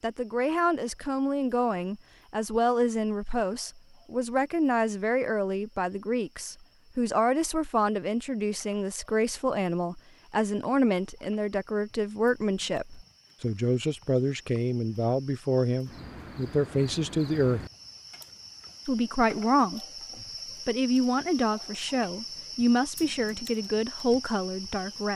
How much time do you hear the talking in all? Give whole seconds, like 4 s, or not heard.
23 s.